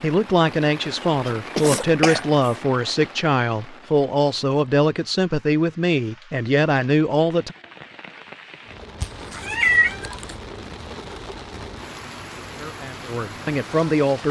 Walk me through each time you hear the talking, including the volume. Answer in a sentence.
The talking can be heard from 0.0 to 7.5 s, at a steady volume; and briefly from 12.6 to 14.2 s.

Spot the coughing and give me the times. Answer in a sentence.
The coughing can be heard from 1.6 to 2.5 s.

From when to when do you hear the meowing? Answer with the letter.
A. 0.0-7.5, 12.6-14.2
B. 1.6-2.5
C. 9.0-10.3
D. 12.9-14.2
C.